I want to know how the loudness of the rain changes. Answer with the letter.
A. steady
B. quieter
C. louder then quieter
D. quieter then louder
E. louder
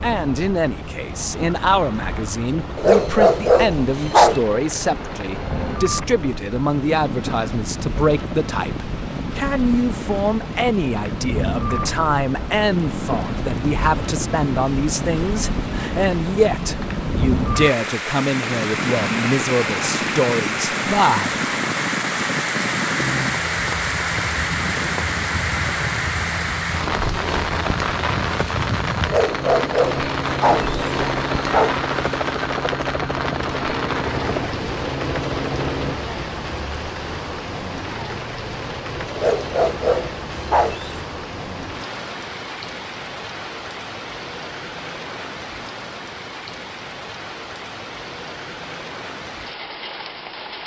C.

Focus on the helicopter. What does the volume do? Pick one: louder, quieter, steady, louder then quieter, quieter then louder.
louder.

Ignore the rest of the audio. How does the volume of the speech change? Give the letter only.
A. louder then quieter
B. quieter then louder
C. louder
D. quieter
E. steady
E.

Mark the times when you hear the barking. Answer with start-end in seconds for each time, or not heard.
2.8-4.4, 29.1-31.8, 39.1-41.0.